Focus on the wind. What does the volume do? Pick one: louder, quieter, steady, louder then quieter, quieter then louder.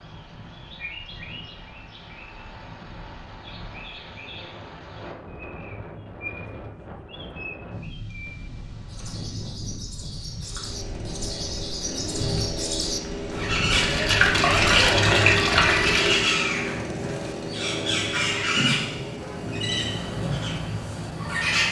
louder.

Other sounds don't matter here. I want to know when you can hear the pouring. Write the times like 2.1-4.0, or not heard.
13.7-16.2.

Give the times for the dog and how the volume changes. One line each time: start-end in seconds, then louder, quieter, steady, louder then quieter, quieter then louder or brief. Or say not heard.
not heard.